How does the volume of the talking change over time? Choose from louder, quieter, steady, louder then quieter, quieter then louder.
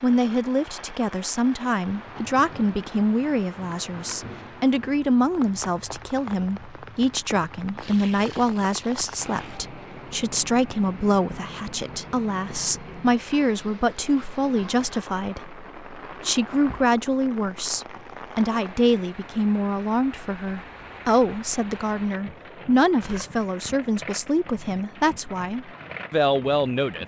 steady.